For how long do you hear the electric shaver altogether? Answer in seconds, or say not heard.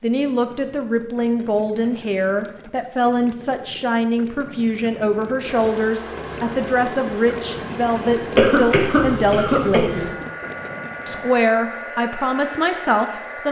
not heard.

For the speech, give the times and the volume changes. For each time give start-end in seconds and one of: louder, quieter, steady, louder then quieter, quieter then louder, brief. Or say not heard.
0.0-10.2 steady
11.1-13.4 brief.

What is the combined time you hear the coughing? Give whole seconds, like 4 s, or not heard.
2 s.